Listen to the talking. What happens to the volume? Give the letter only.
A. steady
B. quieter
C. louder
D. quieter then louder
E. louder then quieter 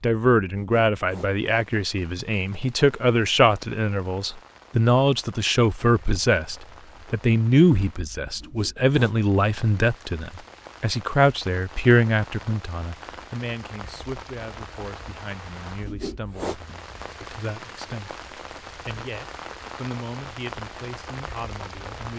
B.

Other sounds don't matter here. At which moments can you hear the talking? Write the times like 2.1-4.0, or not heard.
0.0-22.1.